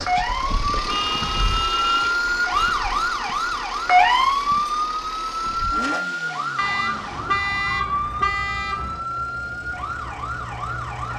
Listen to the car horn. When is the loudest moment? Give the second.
7 s.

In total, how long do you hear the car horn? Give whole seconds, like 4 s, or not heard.
4 s.